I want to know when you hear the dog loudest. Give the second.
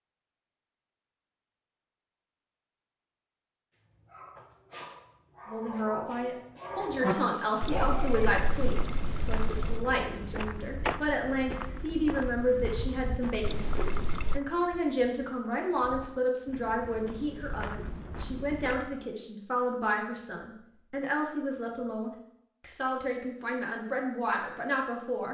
7 s.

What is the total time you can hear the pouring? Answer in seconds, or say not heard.
3 s.